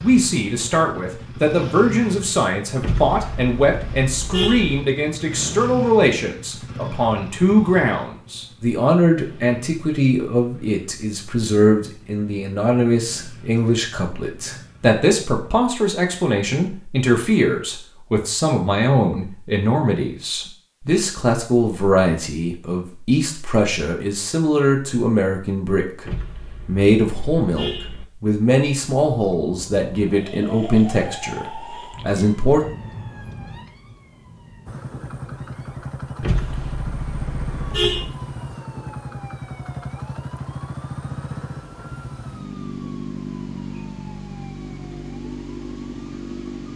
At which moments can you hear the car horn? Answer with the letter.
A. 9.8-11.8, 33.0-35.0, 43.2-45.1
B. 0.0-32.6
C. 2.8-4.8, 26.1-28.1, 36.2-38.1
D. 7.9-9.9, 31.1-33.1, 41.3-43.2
C.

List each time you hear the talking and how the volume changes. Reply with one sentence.
The talking can be heard from 0.0 to 32.6 s, at a steady volume.